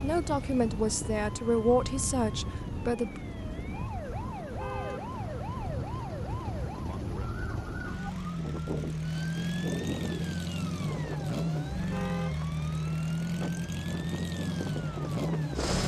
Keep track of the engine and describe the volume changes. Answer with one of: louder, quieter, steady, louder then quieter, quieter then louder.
louder.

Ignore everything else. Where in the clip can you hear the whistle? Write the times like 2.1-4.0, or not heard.
not heard.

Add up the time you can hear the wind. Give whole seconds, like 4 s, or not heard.
16 s.